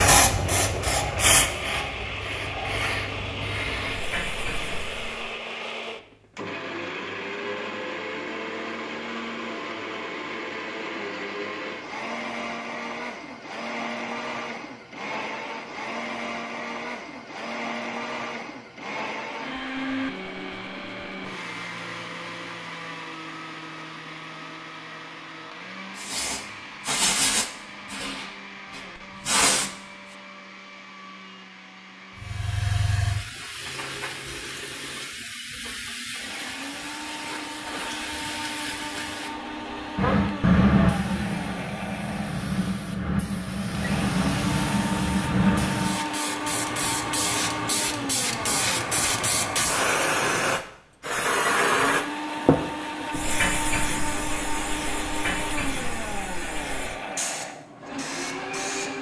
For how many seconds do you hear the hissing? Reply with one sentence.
The hissing can be heard for 36 seconds in total.